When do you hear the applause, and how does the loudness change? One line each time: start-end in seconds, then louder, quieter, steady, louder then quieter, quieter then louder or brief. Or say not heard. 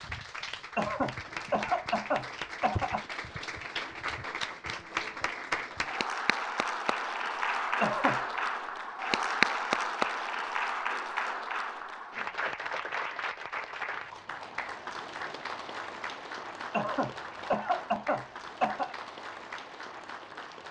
0.0-20.6 louder then quieter.